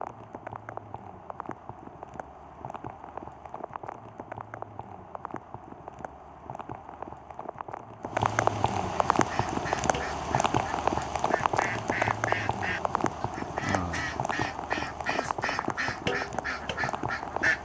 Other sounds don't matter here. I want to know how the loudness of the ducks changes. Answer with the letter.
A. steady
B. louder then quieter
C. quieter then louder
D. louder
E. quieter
D.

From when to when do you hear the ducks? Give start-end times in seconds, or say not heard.
9.1-17.6.